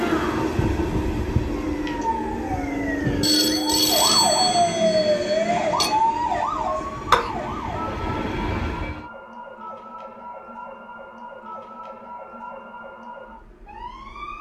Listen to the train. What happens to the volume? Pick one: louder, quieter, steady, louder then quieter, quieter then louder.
quieter then louder.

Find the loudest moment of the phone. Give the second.
4 s.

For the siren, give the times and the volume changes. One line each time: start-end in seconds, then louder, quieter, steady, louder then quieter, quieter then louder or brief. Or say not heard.
0.0-14.3 louder then quieter.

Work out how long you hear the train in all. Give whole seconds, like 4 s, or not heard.
9 s.